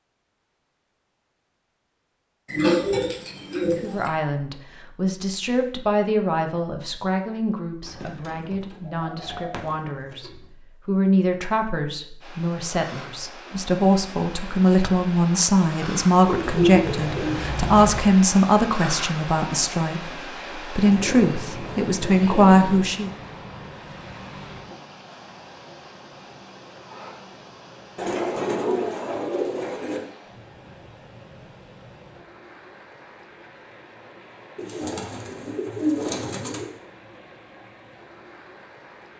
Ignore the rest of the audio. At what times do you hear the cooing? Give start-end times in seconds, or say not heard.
2.5-4.1, 7.8-10.3, 16.2-18.0, 20.8-22.9, 27.9-30.0, 34.5-36.6.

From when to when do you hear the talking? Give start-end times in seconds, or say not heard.
3.6-23.1.